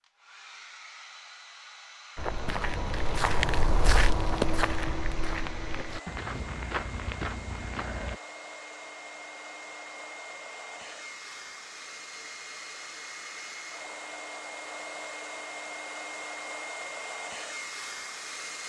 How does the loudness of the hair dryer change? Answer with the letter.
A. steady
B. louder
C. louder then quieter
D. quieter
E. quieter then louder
B.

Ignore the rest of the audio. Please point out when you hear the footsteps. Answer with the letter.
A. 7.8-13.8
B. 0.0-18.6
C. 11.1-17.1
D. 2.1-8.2
D.